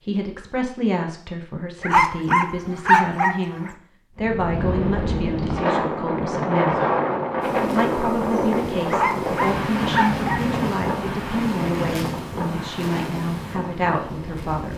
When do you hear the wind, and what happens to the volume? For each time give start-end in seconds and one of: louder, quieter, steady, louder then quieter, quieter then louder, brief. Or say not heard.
4.2-14.7 quieter.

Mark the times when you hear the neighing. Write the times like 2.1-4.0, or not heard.
not heard.